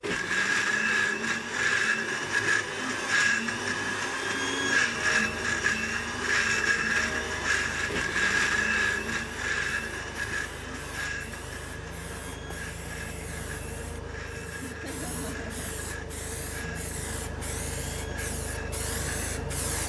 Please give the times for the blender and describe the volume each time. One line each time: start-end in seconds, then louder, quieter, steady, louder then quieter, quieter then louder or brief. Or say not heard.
0.0-19.8 quieter.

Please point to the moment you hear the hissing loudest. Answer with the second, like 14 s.
19 s.